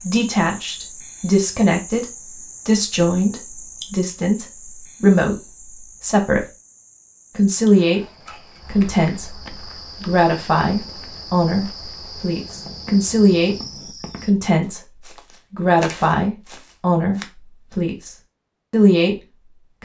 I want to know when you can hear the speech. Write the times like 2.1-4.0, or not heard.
0.0-6.5, 7.3-8.1, 8.7-13.6, 14.2-19.1.